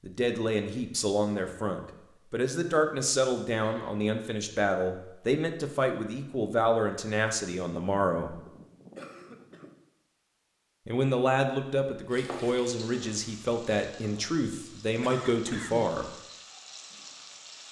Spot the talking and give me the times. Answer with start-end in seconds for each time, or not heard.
0.0-8.4, 10.8-16.1.